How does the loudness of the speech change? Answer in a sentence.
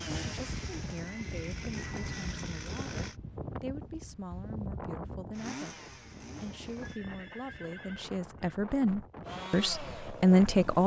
The volume of the speech goes up.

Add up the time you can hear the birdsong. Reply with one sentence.
You can't hear the birdsong here.